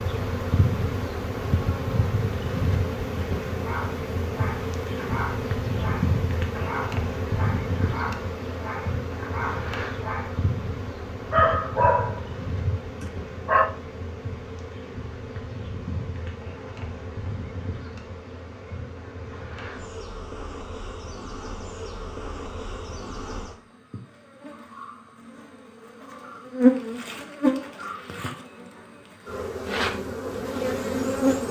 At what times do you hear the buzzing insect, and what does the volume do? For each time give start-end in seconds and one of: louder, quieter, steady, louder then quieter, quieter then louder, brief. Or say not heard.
0.0-31.4 quieter then louder.